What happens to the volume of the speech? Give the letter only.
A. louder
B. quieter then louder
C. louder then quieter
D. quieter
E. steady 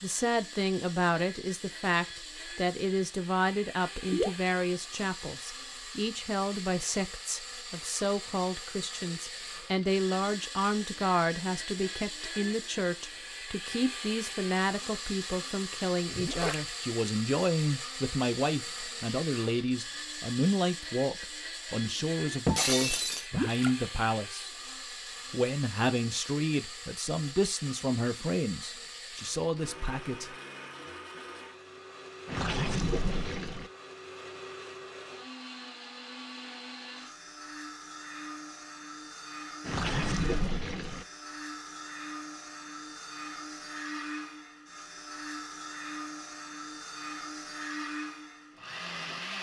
E.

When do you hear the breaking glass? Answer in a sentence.
You can hear the breaking glass from 22.4 to 23.2 s.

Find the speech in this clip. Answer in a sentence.
You can hear the speech from 0.0 to 24.5 s and from 25.3 to 30.4 s.